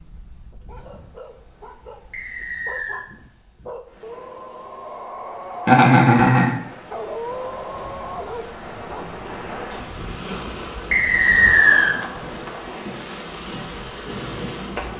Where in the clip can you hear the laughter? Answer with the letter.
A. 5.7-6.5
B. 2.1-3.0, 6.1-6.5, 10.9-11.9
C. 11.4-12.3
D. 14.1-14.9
A.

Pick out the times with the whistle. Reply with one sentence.
The whistle can be heard from 2.1 to 3.0 s, from 6.1 to 6.5 s and from 10.9 to 11.9 s.